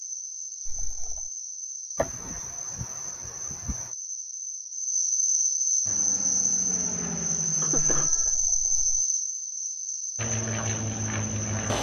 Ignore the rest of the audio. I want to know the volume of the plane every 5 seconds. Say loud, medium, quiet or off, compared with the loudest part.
off, medium, loud.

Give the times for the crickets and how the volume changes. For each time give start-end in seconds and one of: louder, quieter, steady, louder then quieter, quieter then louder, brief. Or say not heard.
0.0-11.7 louder then quieter.